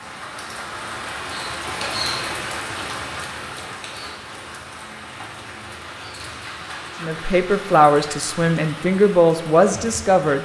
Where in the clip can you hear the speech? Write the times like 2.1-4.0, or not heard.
7.0-10.4.